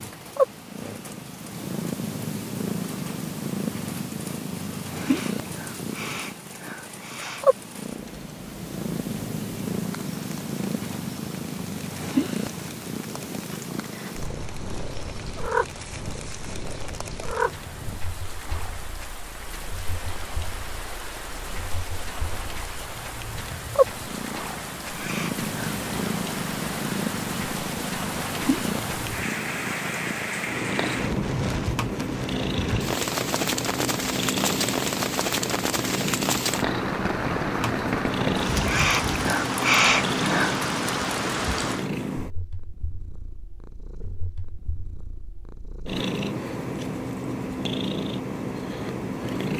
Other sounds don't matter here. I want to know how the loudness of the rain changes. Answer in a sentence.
The volume of the rain goes up.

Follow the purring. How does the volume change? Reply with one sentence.
The volume of the purring stays about the same.